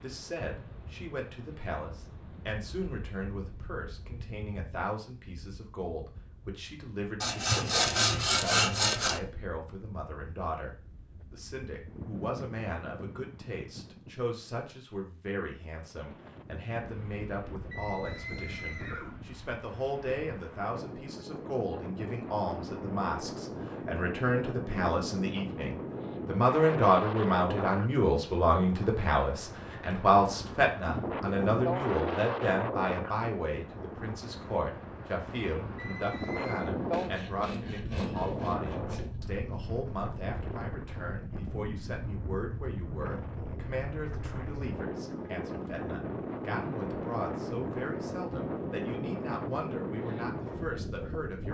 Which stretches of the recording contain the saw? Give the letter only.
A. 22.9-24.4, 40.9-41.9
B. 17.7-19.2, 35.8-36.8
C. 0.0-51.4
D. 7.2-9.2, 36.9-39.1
D.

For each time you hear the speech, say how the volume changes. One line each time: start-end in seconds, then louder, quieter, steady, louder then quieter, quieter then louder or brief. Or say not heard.
0.0-51.4 louder then quieter.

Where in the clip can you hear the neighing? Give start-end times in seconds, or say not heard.
17.7-19.2, 35.8-36.8.